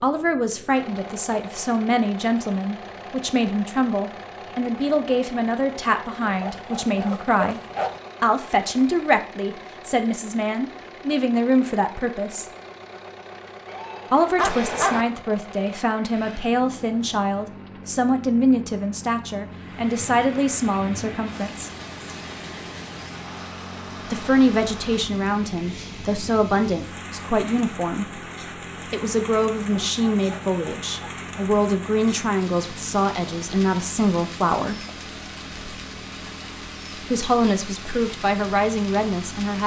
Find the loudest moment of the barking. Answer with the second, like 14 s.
15 s.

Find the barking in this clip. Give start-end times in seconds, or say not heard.
6.2-8.0, 13.7-15.1, 29.8-31.5.